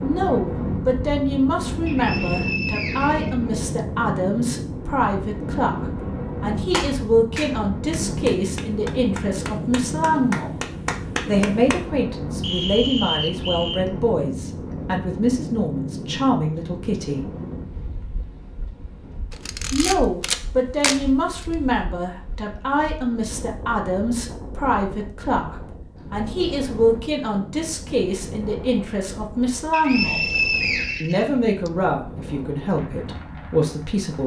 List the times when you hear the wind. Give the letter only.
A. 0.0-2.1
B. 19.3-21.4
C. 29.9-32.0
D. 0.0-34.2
D.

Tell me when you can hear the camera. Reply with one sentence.
The camera can be heard from 19.3 to 21.4 s.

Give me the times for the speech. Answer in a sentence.
You can hear the speech from 0.0 to 10.6 s, from 11.2 to 17.3 s, from 19.7 to 30.2 s and from 31.0 to 34.2 s.